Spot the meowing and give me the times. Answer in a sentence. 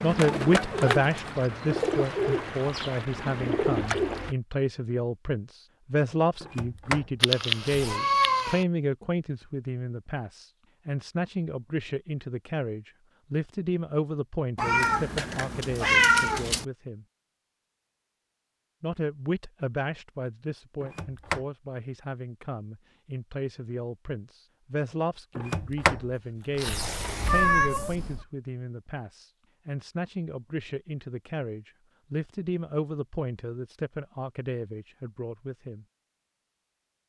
You can hear the meowing from 7.2 to 8.6 s, from 14.6 to 16.6 s and from 27.2 to 28.2 s.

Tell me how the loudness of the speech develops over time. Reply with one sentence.
The loudness of the speech goes down.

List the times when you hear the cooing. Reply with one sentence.
You can hear the cooing from 0.0 to 4.3 s.